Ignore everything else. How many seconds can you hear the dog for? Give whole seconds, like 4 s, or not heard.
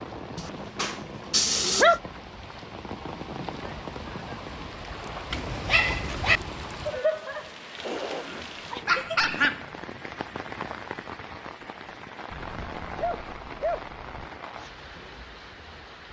6 s.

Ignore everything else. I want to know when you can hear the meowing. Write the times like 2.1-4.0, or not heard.
6.9-8.3.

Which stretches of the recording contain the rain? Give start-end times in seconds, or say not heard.
0.0-16.0.